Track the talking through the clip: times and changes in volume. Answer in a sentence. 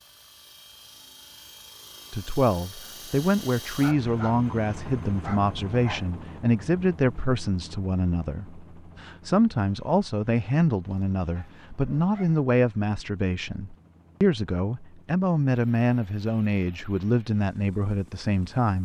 The talking can be heard from 2.1 to 18.7 s, at a steady volume.